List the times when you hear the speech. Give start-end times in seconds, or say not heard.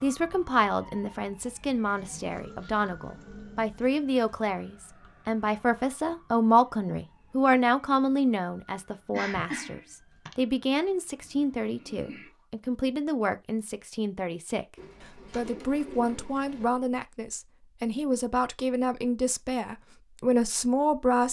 0.0-14.7, 15.3-21.2.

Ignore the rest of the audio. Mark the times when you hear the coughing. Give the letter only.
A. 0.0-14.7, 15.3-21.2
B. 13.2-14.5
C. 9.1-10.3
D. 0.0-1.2
C.